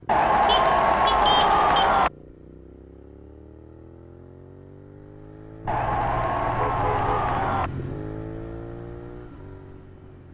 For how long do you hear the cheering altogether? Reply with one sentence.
The cheering can be heard for 4 seconds in total.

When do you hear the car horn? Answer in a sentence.
You can hear the car horn from 0.5 to 1.9 s and from 5.6 to 7.7 s.